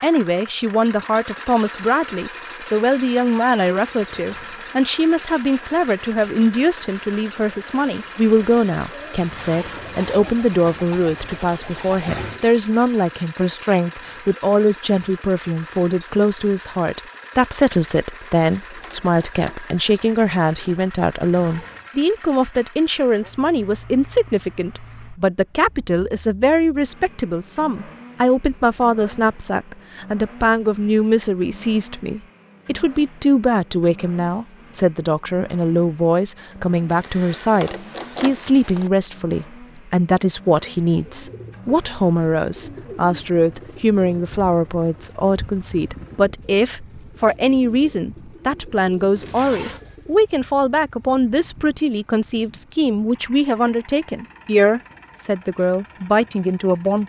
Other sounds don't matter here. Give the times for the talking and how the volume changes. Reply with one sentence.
You can hear the talking from 0.0 to 57.0 s, at a steady volume.